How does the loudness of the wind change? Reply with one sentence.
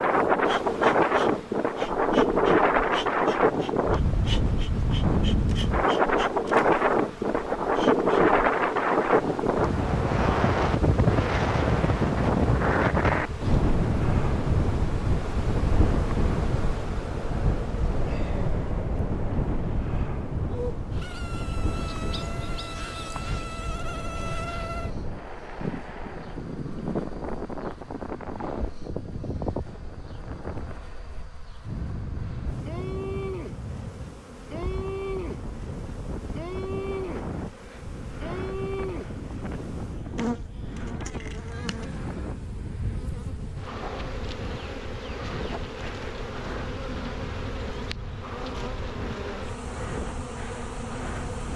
The loudness of the wind goes down.